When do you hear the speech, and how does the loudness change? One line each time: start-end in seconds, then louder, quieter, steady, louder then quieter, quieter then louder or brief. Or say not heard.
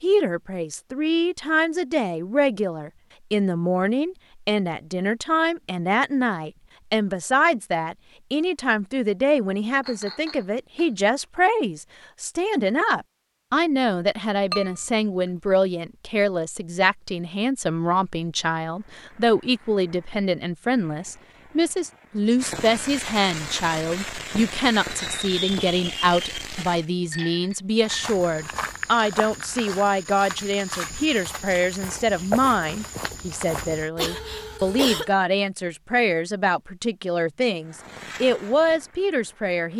0.0-39.7 steady.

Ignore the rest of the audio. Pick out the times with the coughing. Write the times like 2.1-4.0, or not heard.
34.0-35.1.